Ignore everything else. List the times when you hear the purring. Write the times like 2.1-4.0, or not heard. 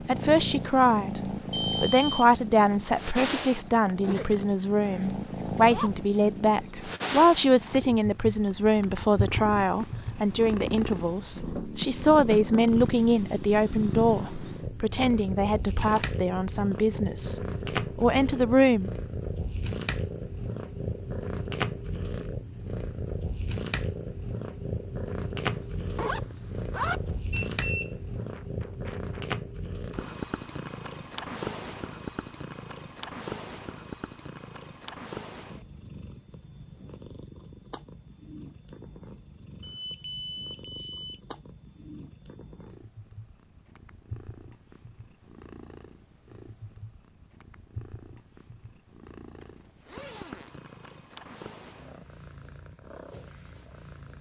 0.0-54.1.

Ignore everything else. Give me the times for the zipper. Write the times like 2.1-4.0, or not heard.
4.0-5.9, 25.6-27.1, 49.4-51.0.